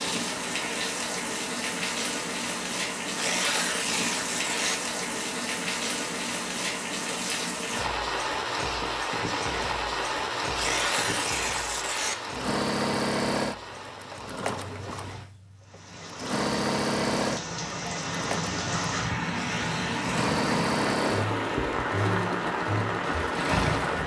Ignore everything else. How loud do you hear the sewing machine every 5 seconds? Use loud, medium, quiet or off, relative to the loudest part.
off, off, loud, loud, loud.